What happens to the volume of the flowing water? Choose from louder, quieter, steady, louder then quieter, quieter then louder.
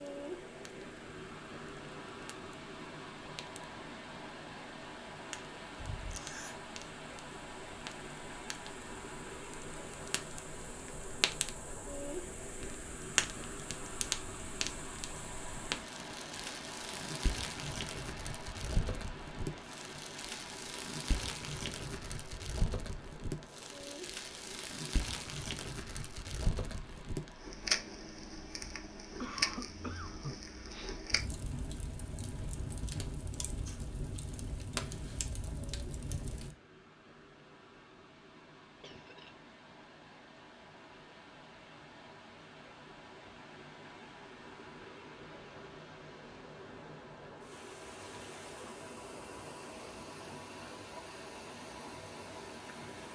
quieter then louder.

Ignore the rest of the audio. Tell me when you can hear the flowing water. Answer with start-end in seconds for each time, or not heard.
0.0-53.1.